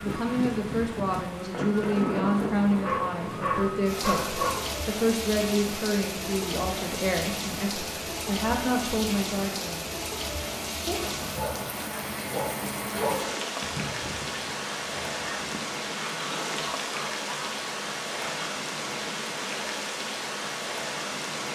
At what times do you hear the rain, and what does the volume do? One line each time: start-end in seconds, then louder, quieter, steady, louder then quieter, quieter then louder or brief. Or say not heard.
0.0-21.5 steady.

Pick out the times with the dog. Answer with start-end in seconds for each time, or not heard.
2.8-4.7, 10.8-13.3.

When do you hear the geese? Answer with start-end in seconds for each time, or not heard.
13.6-18.5.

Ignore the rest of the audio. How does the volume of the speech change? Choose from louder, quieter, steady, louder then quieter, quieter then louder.
steady.